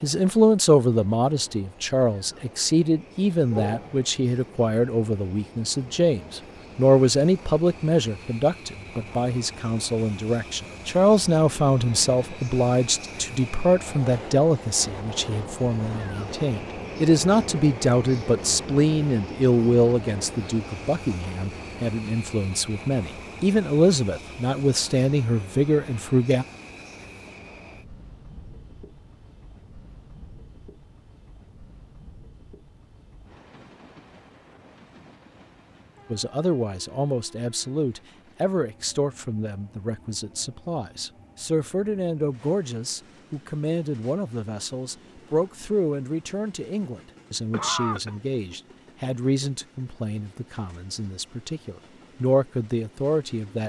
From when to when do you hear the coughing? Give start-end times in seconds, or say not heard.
3.5-4.1, 47.5-48.1.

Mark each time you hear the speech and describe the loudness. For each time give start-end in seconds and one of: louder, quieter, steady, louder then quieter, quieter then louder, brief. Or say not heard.
0.0-26.4 steady
36.1-53.6 steady.